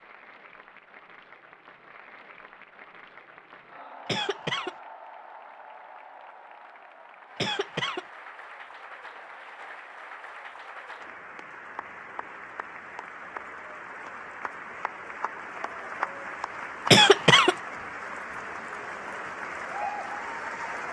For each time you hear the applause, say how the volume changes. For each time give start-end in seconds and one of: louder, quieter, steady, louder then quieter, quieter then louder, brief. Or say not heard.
0.0-20.8 louder.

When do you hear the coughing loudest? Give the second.
17 s.